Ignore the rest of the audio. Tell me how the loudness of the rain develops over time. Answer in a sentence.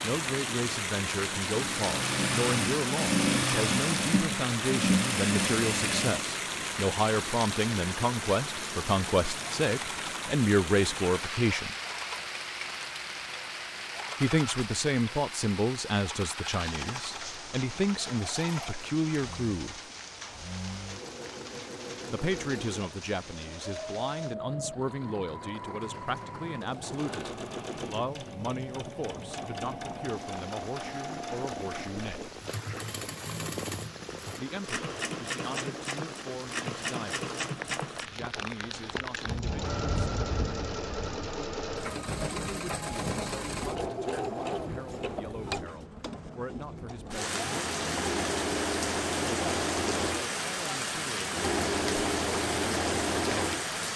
The volume of the rain goes down, then up.